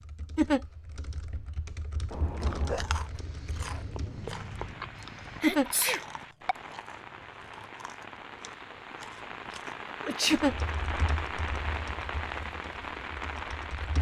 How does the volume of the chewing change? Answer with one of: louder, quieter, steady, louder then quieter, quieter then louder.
quieter.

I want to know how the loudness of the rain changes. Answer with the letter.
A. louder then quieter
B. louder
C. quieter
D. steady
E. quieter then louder
B.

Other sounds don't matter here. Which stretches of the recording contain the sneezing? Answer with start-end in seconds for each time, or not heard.
2.1-3.0, 5.4-6.0, 10.0-10.4.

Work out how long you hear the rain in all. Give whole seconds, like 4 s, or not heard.
10 s.